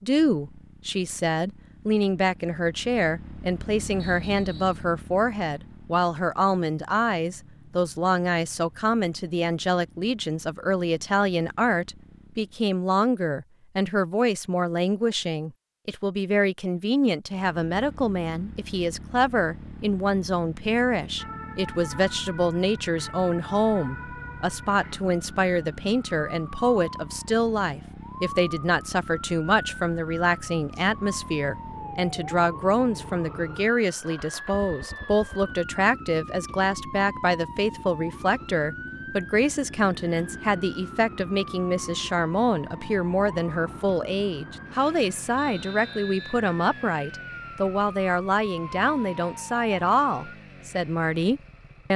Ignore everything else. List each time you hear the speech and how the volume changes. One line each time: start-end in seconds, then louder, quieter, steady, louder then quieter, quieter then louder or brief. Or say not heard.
0.0-51.9 steady.